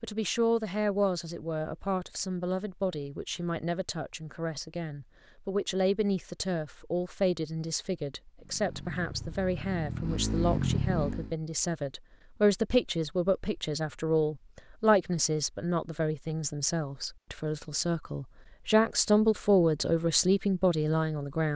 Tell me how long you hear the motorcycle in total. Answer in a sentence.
The motorcycle can be heard for 3 seconds in total.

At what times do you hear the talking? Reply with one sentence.
The talking can be heard from 0.0 to 21.5 s.